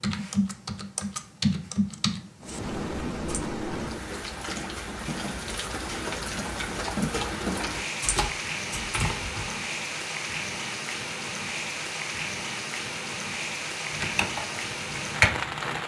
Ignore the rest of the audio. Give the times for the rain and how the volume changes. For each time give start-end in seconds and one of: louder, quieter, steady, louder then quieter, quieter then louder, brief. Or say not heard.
2.4-15.8 steady.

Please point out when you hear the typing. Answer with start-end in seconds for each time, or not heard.
0.0-3.5, 8.0-9.6, 13.9-15.8.